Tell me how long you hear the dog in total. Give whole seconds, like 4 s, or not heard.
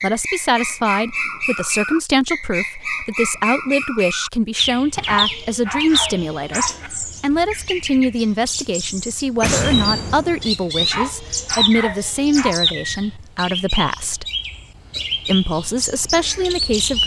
4 s.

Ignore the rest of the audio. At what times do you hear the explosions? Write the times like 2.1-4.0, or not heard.
9.4-10.5.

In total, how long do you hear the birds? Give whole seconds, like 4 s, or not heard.
17 s.